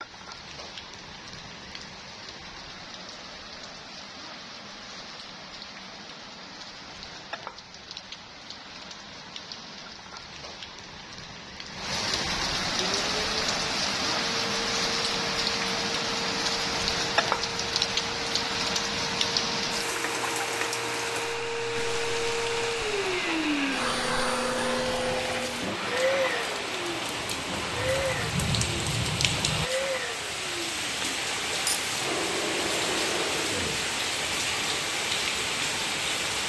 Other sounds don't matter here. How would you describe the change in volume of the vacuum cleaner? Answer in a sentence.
The volume of the vacuum cleaner goes up, then down.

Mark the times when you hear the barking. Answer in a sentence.
The barking can't be heard in this clip.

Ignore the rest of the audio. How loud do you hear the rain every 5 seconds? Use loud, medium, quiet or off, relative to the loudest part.
quiet, quiet, loud, loud, medium, loud, loud, loud.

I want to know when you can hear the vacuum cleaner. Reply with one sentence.
The vacuum cleaner can be heard from 12.8 to 36.4 s.